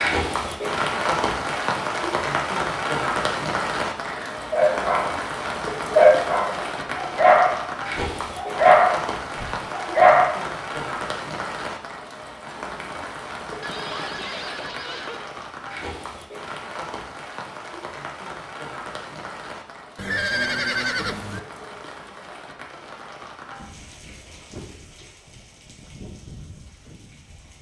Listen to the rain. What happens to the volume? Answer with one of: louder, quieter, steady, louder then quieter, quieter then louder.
quieter.